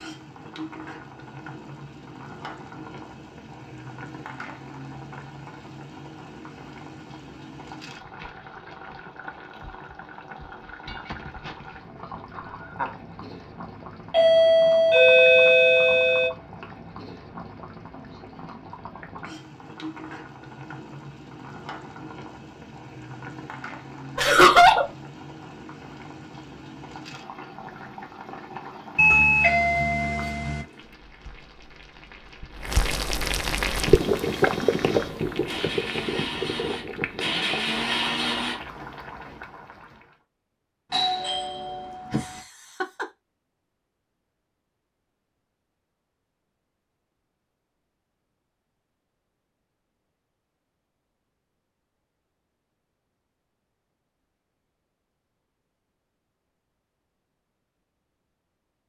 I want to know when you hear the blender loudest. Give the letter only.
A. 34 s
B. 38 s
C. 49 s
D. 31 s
B.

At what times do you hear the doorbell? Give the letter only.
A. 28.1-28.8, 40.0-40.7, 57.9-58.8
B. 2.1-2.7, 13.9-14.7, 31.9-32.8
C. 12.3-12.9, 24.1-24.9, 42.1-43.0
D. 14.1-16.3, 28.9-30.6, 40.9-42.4
D.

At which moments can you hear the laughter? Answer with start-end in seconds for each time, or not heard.
12.3-12.9, 24.1-24.9, 42.1-43.0.